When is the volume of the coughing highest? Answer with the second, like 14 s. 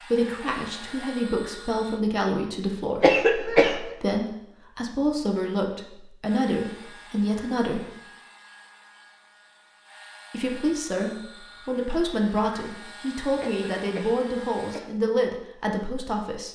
3 s.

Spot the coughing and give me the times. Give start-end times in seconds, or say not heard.
3.0-3.8, 13.4-15.0.